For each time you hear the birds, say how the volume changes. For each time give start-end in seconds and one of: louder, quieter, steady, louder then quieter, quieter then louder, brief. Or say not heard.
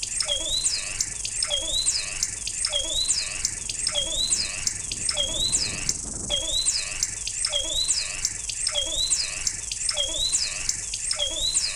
0.0-11.7 steady.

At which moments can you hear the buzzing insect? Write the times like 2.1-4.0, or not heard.
0.0-11.7.